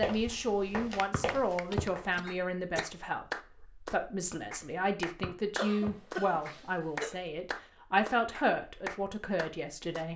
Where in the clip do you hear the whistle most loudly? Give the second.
2 s.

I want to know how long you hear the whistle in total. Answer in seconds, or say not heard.
2 s.